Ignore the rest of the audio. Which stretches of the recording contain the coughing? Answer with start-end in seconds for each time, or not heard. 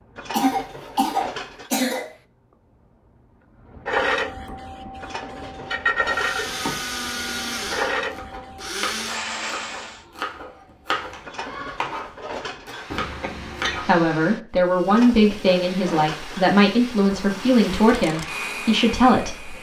0.3-2.1, 12.9-13.9.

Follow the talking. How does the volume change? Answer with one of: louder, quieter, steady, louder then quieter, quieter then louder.
steady.